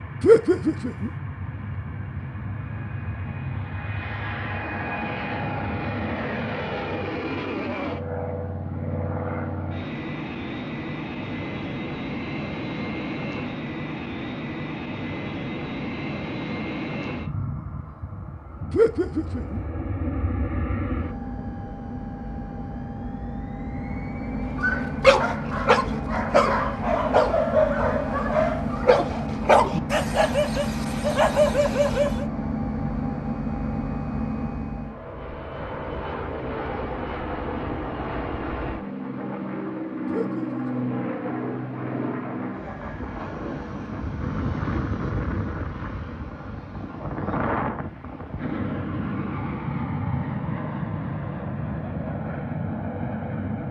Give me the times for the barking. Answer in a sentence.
You can hear the barking from 24.6 to 32.2 s.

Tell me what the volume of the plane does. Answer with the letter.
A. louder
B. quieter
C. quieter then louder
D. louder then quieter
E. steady
E.